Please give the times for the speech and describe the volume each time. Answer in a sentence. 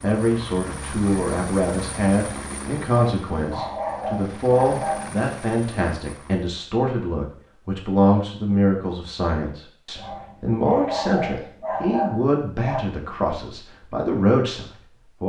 The speech can be heard from 0.0 to 15.2 s, at a steady volume.